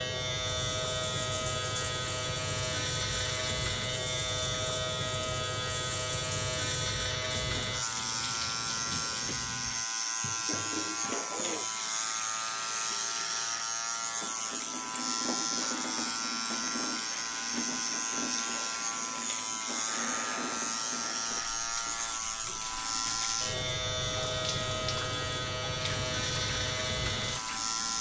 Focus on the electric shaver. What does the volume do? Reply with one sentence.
The loudness of the electric shaver stays about the same.